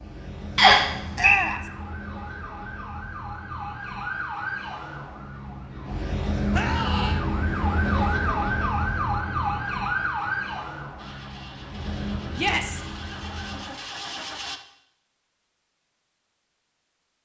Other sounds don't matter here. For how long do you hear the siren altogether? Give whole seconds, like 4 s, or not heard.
14 s.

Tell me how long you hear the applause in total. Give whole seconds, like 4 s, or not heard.
not heard.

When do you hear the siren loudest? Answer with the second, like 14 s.
8 s.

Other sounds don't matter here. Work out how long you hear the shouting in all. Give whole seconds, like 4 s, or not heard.
2 s.